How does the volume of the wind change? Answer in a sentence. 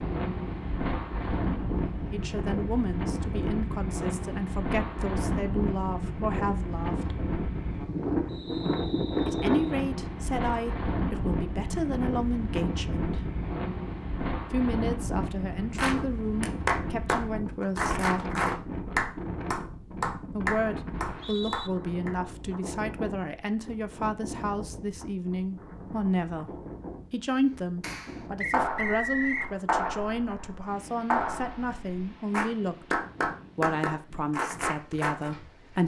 The volume of the wind goes down.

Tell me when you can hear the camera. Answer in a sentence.
You can't hear the camera here.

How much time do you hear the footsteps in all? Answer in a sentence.
You can't hear the footsteps here.